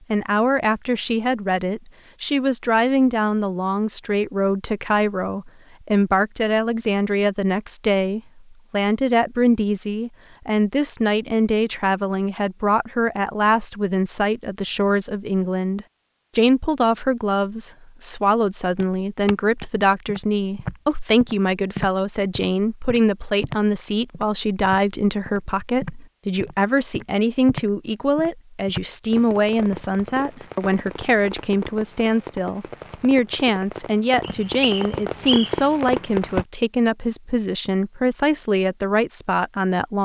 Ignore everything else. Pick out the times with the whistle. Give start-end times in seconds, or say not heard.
34.2-35.6.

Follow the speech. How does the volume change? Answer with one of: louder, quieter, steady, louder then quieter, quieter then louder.
steady.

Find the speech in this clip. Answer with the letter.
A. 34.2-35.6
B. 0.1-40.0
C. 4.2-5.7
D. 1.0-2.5
B.